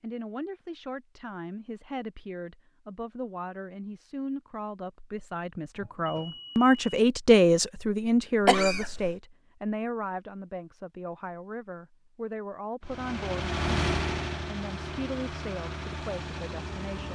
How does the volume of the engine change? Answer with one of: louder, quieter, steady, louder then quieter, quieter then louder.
quieter.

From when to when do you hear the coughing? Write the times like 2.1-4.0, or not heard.
8.4-9.2.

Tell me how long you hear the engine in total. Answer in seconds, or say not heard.
4 s.